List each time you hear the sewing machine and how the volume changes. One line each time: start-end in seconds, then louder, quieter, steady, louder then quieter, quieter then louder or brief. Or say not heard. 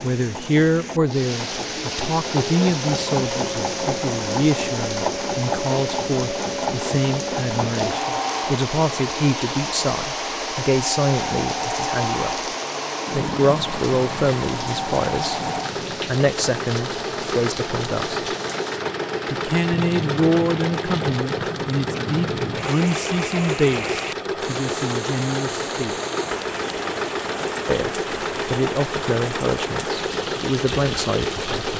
0.0-31.7 steady.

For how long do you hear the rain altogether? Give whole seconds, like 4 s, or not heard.
32 s.